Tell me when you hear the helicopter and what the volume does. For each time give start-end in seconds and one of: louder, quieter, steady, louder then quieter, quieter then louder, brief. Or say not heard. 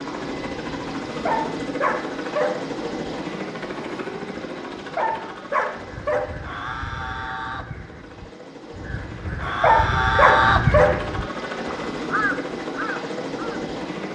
0.0-14.1 quieter then louder.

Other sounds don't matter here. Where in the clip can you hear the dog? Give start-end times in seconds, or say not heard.
1.2-2.5, 5.0-6.2, 9.6-10.9.